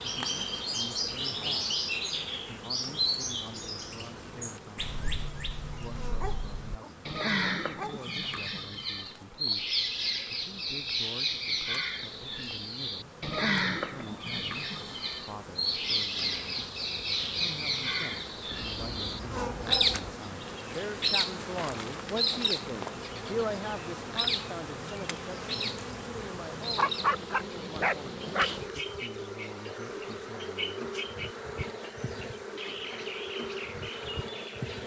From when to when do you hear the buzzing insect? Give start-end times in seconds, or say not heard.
0.0-34.8.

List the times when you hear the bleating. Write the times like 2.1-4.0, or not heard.
not heard.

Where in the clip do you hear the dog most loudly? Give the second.
27 s.